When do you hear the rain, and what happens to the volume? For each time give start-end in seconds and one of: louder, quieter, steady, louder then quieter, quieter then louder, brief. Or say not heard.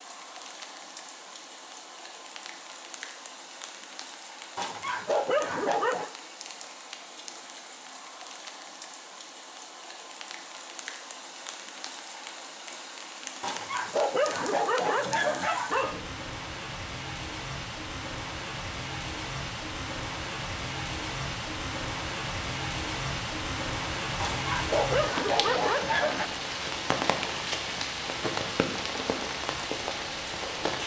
0.0-30.8 louder.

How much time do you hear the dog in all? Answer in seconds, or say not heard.
6 s.